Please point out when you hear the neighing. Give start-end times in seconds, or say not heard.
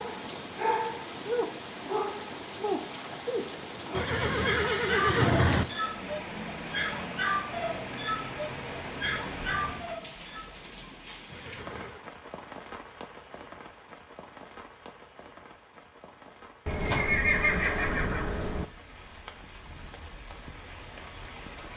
3.9-5.7, 11.3-12.1, 16.6-18.6.